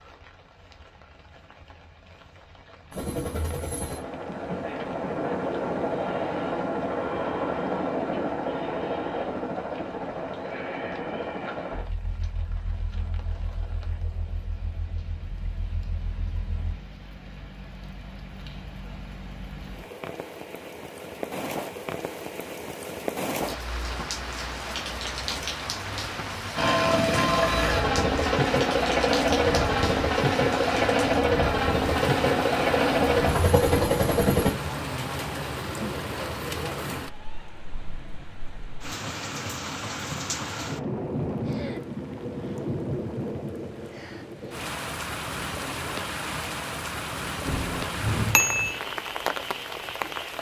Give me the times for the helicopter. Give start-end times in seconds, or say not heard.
2.9-16.8, 26.6-34.5.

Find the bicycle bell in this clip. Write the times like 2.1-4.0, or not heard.
47.5-48.8.